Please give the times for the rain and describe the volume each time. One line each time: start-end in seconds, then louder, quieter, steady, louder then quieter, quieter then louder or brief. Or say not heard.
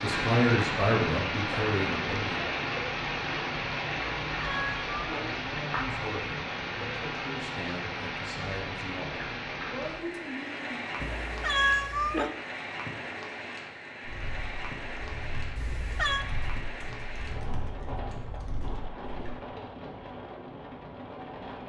0.0-21.6 quieter.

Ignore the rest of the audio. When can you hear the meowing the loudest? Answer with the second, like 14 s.
12 s.